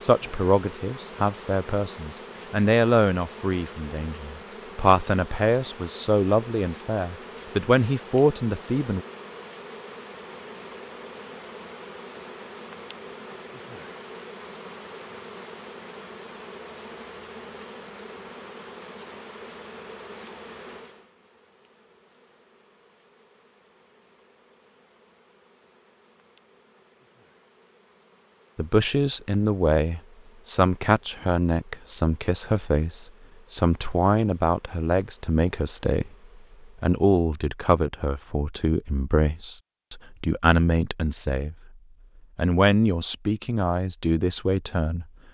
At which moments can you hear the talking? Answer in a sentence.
The talking can be heard from 0.0 to 9.0 s, from 28.6 to 36.1 s, from 36.8 to 41.5 s and from 42.4 to 45.0 s.